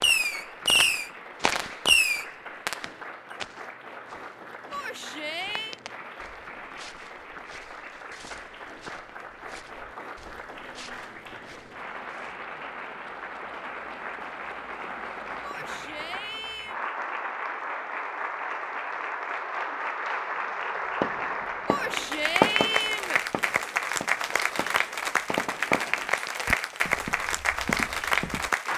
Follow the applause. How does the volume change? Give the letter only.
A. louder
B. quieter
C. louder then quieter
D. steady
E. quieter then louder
A.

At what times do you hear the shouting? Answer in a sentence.
You can hear the shouting from 4.7 to 5.8 s, from 15.4 to 16.8 s and from 21.6 to 23.2 s.